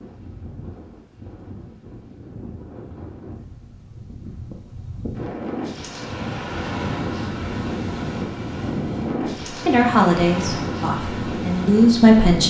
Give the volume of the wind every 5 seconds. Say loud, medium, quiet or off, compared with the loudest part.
quiet, loud, loud.